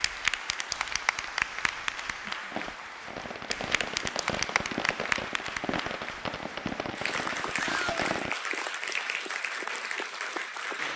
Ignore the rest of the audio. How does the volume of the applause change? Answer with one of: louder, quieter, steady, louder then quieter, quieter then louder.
steady.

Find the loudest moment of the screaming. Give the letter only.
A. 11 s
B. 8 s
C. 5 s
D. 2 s
B.